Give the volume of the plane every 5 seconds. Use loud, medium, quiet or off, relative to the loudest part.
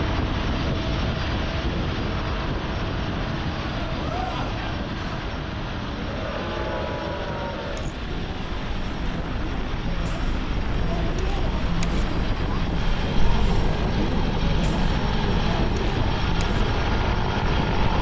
loud, medium, loud, loud.